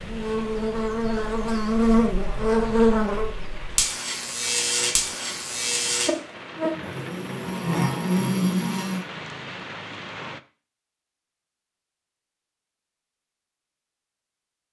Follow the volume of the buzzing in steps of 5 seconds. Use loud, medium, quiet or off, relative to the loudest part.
loud, loud, off.